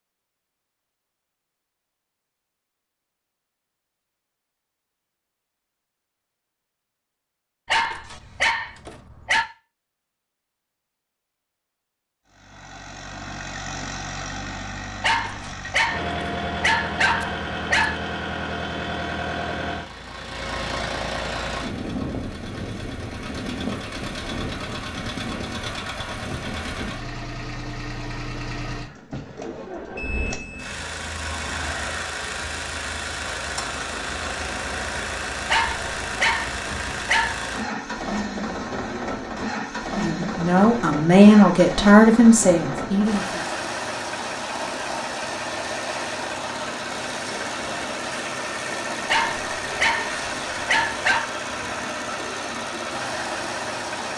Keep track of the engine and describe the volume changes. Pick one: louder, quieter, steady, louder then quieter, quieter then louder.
steady.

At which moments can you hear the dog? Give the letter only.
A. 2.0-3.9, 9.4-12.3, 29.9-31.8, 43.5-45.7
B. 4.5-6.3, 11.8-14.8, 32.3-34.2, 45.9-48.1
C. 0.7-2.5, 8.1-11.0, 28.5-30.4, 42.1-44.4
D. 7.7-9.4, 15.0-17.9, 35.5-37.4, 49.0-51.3
D.